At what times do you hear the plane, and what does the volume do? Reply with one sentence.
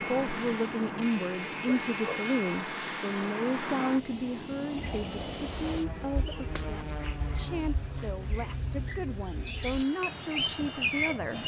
You can hear the plane from 0.0 to 11.4 s, getting quieter.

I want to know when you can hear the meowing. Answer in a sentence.
The meowing can't be heard in this clip.